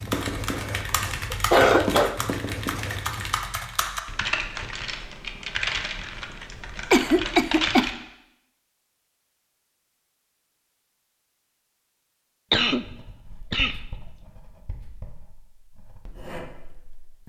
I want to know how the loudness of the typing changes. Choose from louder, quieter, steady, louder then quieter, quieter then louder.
steady.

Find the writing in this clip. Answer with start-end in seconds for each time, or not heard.
0.0-3.5, 12.7-17.2.